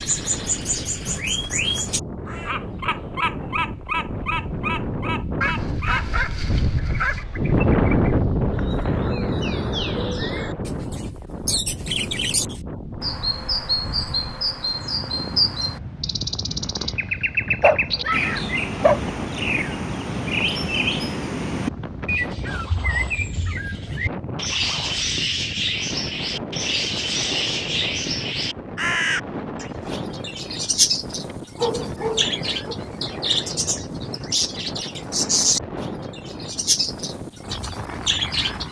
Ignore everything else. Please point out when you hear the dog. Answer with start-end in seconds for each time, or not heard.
5.4-7.2, 17.6-19.0, 31.3-32.8.